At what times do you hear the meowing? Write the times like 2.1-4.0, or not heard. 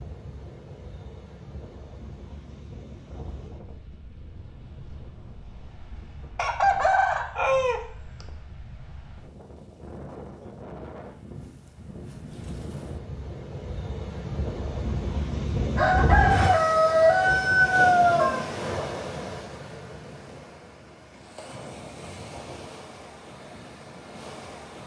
not heard.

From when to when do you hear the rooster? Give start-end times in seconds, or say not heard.
6.3-8.2, 15.8-18.4.